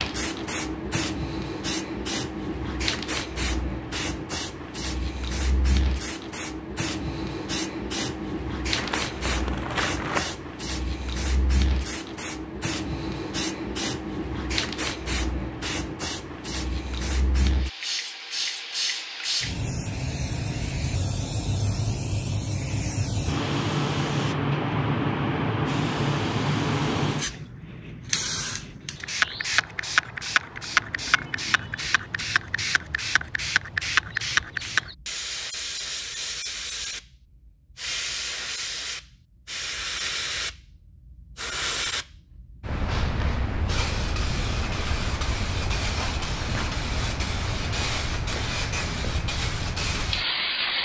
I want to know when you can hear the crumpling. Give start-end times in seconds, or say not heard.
8.8-10.3.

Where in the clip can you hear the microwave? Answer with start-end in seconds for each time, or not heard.
not heard.